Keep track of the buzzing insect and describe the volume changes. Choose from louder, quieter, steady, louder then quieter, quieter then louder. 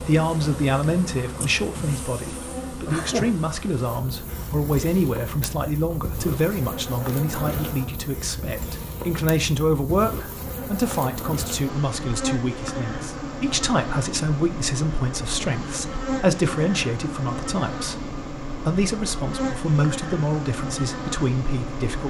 steady.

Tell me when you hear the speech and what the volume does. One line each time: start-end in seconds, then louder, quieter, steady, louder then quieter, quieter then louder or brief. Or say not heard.
0.0-22.0 steady.